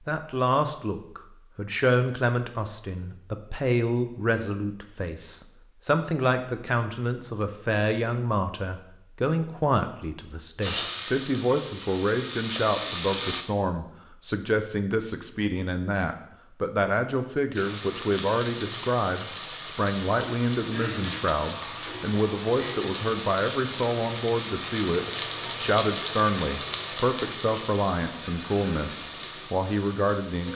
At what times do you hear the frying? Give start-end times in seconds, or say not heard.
10.6-13.4, 17.5-30.5.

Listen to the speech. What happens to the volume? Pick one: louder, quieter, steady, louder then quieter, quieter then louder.
steady.